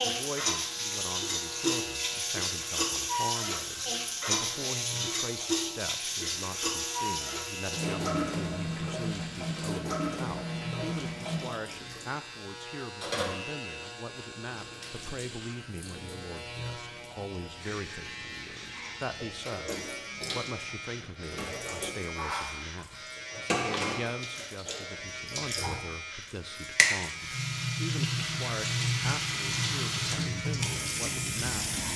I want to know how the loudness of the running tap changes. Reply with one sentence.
The loudness of the running tap goes down, then up.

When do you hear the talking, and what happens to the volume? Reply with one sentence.
You can hear the talking from 0.0 to 31.7 s, at a steady volume.